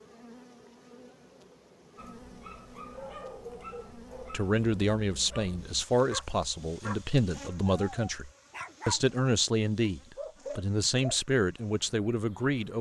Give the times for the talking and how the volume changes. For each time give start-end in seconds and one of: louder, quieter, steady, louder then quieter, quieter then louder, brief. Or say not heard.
4.3-12.7 steady.